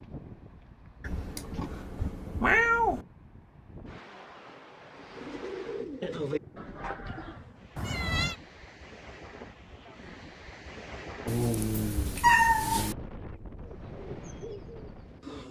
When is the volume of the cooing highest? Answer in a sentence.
The loudest moment of the cooing is at 6 seconds.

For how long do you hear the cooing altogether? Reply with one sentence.
You can hear the cooing for 4 seconds altogether.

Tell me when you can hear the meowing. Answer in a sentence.
The meowing can be heard from 1.0 to 3.0 s, from 7.8 to 8.3 s and from 11.2 to 12.9 s.